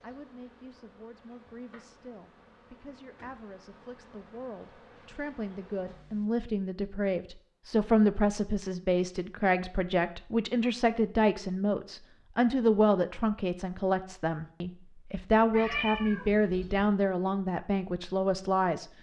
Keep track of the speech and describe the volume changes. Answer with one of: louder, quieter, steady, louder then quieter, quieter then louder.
louder.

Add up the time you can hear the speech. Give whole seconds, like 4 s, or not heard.
19 s.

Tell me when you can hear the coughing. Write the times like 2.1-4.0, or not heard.
not heard.